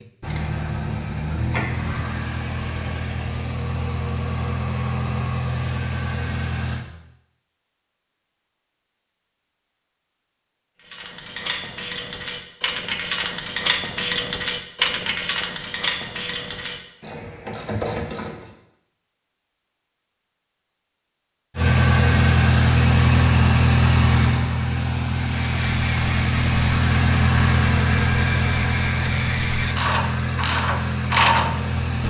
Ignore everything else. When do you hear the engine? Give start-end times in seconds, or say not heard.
0.0-6.8, 21.6-32.0.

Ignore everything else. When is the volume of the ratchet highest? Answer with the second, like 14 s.
31 s.